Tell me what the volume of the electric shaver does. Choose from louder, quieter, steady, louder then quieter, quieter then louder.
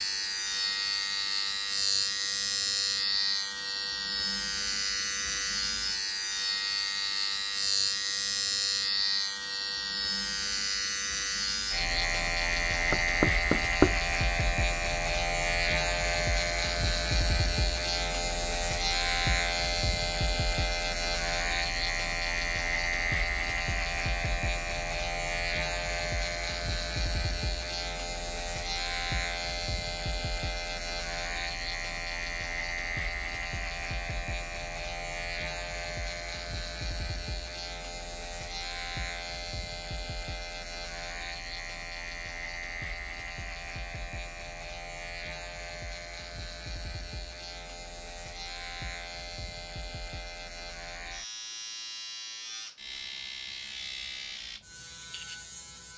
quieter.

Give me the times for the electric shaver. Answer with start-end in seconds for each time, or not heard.
0.0-55.9.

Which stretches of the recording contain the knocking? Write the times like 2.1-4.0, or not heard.
12.9-14.0.